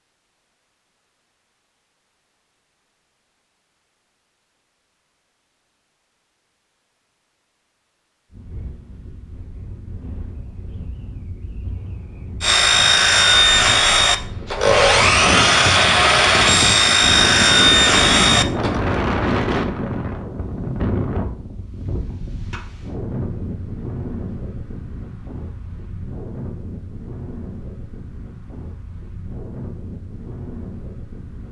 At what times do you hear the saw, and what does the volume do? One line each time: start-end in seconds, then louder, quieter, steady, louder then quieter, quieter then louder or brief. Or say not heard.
12.4-18.8 steady.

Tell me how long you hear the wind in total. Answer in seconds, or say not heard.
23 s.